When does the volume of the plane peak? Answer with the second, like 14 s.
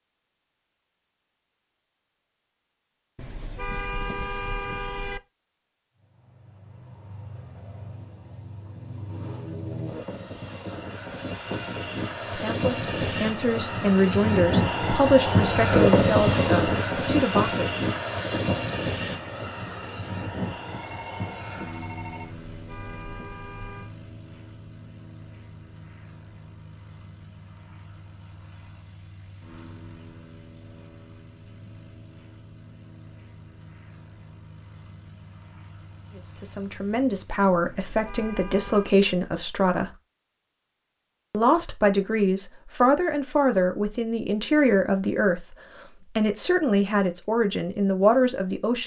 16 s.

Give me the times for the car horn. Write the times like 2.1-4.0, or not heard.
3.1-5.2, 22.5-23.9, 37.6-39.0.